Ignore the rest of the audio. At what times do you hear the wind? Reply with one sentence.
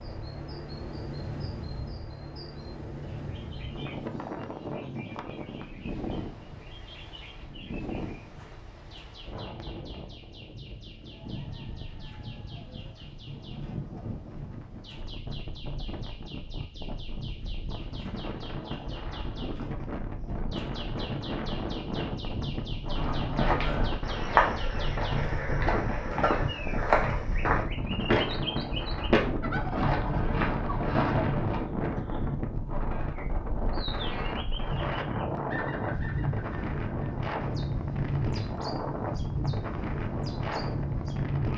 The wind can be heard from 0.0 to 41.5 s.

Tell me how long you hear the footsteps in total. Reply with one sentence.
The footsteps can be heard for 9 seconds in total.